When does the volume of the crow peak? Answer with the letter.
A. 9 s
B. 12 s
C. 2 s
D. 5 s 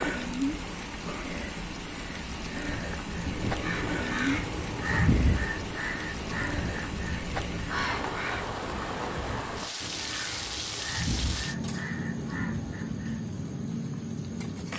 D.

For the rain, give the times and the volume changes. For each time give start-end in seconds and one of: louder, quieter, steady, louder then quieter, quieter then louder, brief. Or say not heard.
0.0-14.7 steady.